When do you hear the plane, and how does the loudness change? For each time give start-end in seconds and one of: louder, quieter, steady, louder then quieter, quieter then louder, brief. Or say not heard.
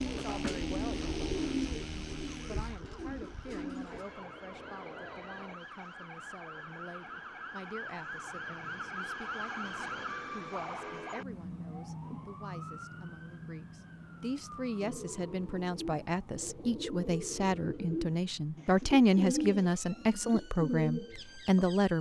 0.0-5.6 quieter then louder.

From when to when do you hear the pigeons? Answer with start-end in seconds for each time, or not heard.
0.0-4.0, 14.8-21.8.